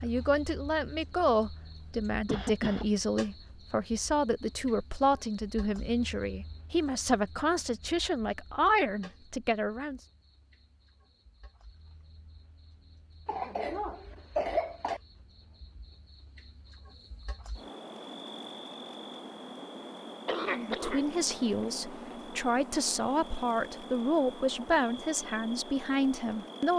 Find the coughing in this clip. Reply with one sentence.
You can hear the coughing from 2.2 to 2.9 s, from 13.2 to 15.0 s and from 20.2 to 22.1 s.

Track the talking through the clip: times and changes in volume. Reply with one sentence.
The talking can be heard from 0.0 to 10.0 s, at a steady volume; and from 20.4 to 26.7 s, at a steady volume.